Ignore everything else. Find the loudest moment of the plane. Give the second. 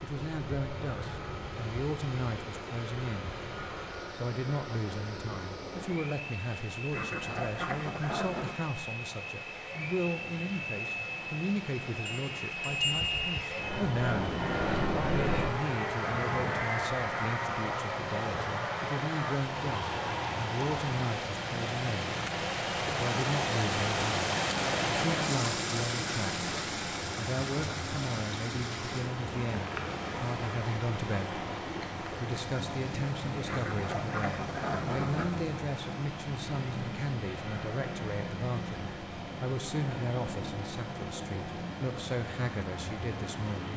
15 s.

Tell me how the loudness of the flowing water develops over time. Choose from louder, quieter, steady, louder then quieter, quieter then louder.
louder then quieter.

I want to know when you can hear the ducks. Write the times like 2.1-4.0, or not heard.
6.9-8.6, 33.5-35.4.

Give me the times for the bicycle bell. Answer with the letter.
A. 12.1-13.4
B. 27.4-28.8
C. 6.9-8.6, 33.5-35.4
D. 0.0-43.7
A.